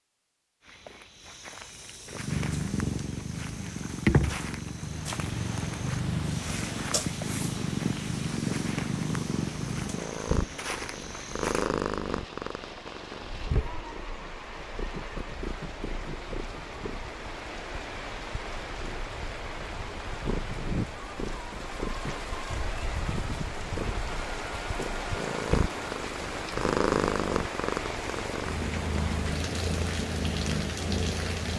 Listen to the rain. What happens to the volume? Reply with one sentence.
The volume of the rain goes up.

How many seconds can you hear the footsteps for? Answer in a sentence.
You can hear the footsteps for 11 seconds altogether.